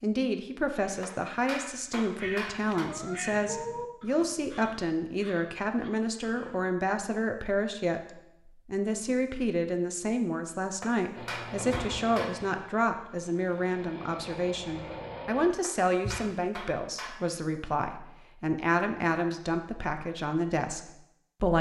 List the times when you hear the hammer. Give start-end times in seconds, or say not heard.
1.0-2.9, 10.8-12.4, 15.6-17.2.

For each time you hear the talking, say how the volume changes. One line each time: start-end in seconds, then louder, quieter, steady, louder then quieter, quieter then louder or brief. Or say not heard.
0.0-21.5 steady.